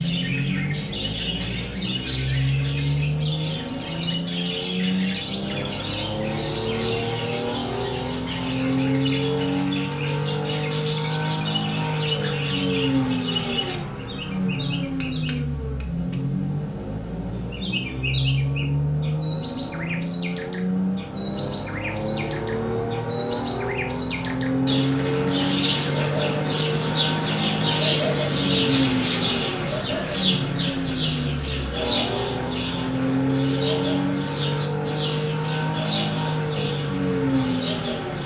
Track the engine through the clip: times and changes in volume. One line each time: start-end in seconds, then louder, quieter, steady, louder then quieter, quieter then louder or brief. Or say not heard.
0.0-38.2 steady.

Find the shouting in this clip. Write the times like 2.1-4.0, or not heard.
not heard.